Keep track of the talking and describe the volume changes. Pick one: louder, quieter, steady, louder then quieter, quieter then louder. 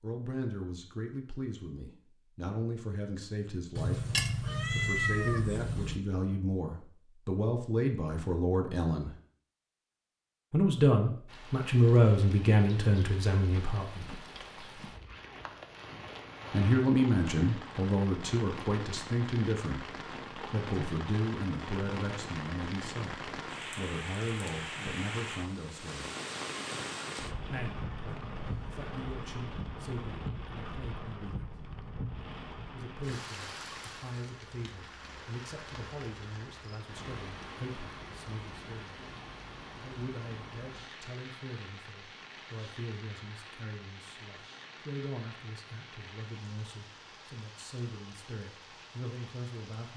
louder then quieter.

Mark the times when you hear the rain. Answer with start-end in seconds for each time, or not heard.
11.2-49.9.